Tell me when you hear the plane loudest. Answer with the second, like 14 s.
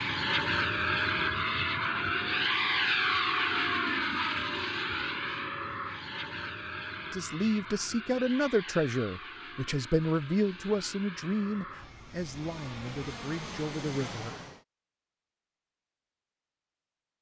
3 s.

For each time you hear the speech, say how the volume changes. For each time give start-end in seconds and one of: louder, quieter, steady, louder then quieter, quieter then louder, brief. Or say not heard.
7.0-14.4 quieter.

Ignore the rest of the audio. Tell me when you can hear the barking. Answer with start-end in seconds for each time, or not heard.
not heard.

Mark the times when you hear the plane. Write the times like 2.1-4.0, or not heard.
0.0-14.6.